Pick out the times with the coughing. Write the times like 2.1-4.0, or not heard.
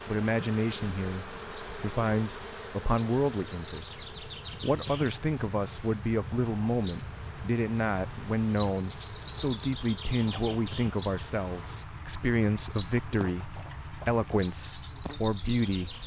not heard.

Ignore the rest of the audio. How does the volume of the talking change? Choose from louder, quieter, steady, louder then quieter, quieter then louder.
steady.